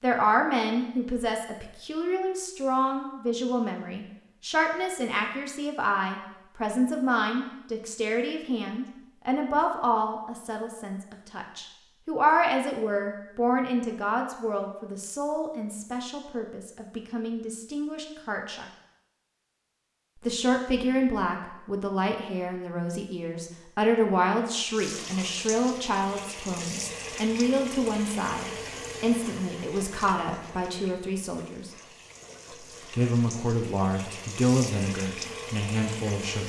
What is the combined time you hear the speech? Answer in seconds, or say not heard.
34 s.